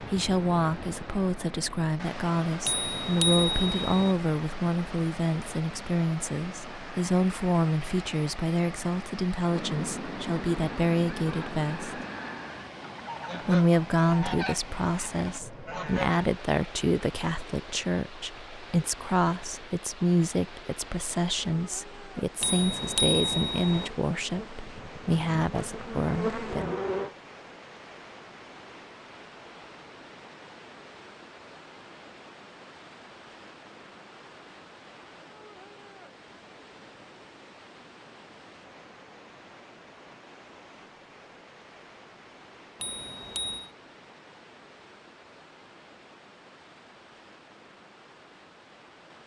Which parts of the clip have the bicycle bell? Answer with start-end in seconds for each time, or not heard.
2.6-4.2, 22.4-23.9, 42.8-43.7.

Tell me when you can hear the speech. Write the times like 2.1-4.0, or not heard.
0.0-12.0, 13.4-26.8.